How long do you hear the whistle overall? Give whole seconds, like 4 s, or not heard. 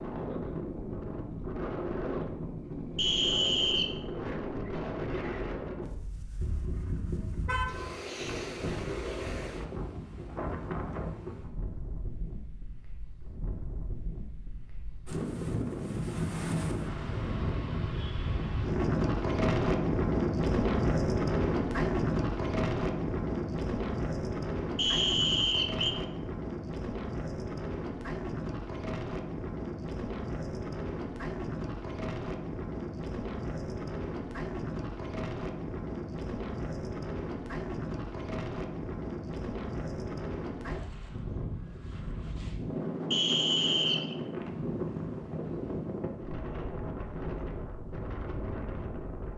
3 s.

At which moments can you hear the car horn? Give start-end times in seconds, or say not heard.
6.4-8.0.